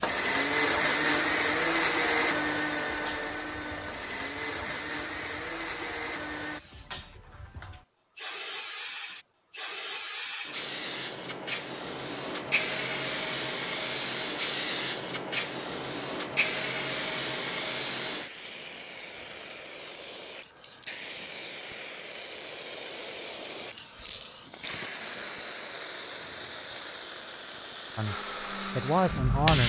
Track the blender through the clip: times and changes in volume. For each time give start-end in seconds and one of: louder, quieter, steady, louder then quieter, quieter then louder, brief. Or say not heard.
0.0-6.6 quieter
28.1-29.6 brief.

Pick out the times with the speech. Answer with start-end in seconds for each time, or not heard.
27.9-29.6.